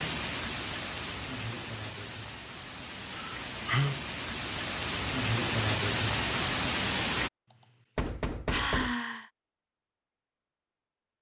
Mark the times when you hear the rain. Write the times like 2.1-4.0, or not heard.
0.0-7.3.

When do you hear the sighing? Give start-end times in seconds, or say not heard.
3.1-4.0, 7.5-9.3.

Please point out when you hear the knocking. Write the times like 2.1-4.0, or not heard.
8.0-8.9.